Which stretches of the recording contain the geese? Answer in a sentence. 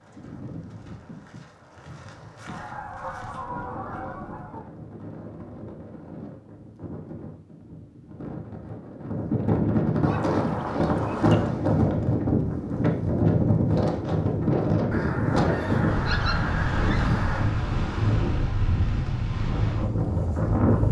You can hear the geese from 2.5 to 4.7 s, from 10.0 to 11.6 s and from 14.9 to 17.6 s.